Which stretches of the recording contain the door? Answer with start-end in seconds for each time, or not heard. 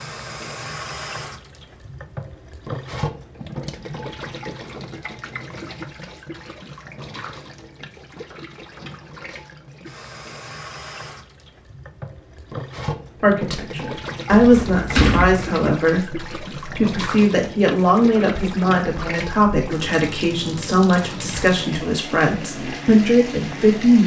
14.4-15.4.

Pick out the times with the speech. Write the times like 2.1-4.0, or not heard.
13.2-24.0.